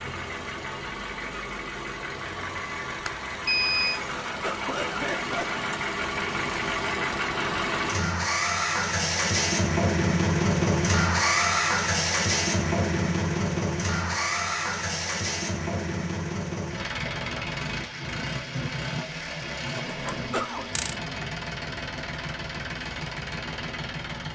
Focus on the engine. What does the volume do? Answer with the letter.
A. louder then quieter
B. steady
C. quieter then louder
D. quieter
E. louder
A.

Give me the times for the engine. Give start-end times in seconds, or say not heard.
0.0-24.3.